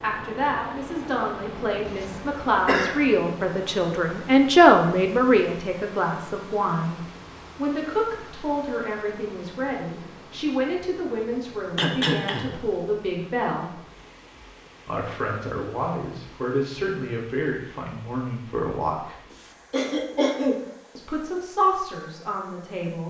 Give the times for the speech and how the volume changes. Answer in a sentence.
You can hear the speech from 0.0 to 13.8 s, getting louder then quieter; from 14.8 to 19.1 s, at a steady volume; and briefly from 20.9 to 23.0 s.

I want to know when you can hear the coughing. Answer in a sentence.
You can hear the coughing from 1.9 to 3.0 s, from 11.8 to 12.7 s and from 19.3 to 20.6 s.